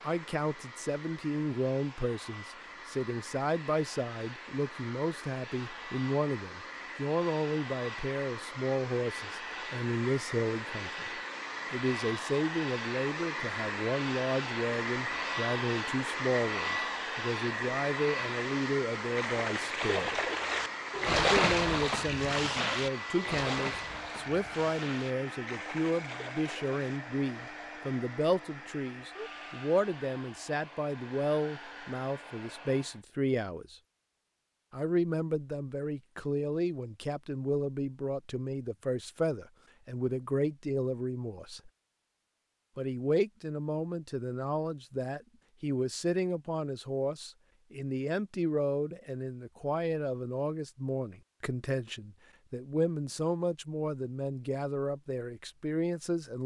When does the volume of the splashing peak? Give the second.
21 s.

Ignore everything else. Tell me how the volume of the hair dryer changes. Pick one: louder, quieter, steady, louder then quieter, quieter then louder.
louder then quieter.